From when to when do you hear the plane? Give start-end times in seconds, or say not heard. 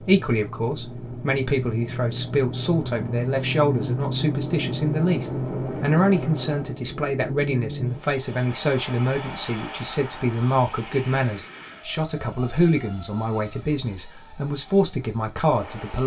0.0-16.0.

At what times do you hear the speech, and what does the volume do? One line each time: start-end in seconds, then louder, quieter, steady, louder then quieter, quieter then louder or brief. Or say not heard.
0.0-16.0 steady.